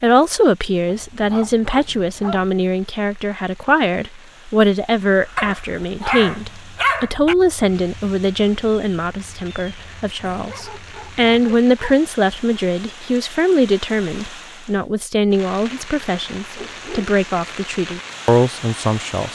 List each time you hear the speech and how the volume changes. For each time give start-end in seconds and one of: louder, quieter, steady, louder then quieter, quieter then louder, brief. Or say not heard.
0.0-19.3 steady.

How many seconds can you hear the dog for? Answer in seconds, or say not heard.
7 s.